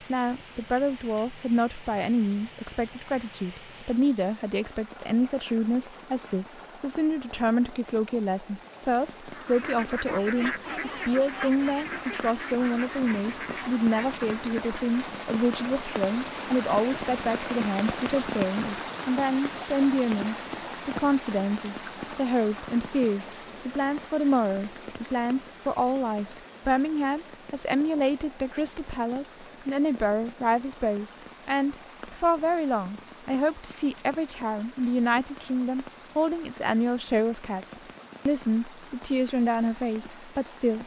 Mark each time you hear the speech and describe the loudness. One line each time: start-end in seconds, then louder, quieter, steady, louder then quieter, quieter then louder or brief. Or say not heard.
0.1-40.8 steady.